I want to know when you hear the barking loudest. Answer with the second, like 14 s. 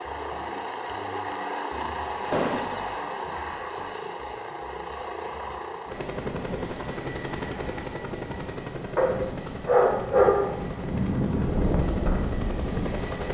10 s.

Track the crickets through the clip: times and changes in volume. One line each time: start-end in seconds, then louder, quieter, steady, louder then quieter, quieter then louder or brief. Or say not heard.
not heard.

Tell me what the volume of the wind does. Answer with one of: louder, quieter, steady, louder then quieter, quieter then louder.
louder.